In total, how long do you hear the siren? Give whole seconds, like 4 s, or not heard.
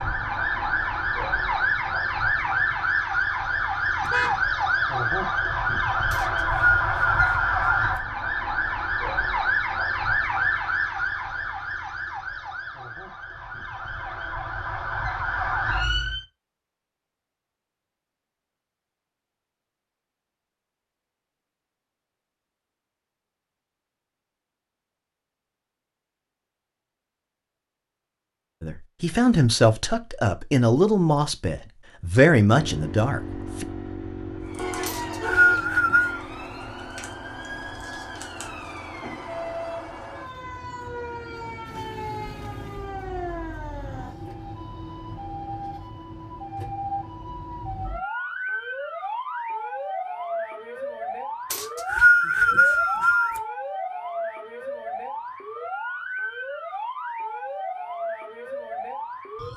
41 s.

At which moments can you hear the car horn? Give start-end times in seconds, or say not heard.
4.0-4.4, 34.5-35.6, 41.6-43.0.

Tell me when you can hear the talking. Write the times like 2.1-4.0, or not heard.
28.6-33.6.